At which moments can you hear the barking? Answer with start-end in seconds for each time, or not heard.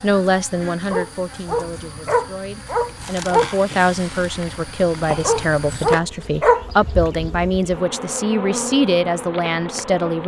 0.9-3.5, 5.2-6.7.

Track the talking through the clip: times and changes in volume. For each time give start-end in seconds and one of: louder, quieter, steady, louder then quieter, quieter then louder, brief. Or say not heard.
0.0-10.2 louder.